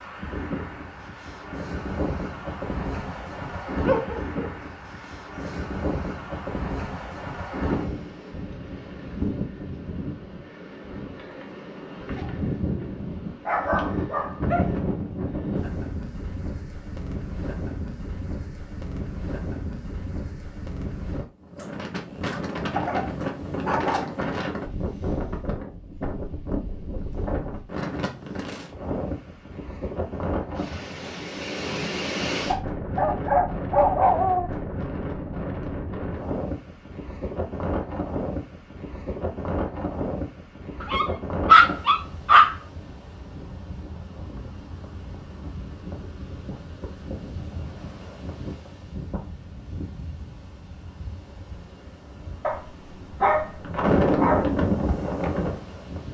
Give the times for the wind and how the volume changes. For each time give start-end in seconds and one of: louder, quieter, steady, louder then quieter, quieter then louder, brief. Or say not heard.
0.0-56.1 steady.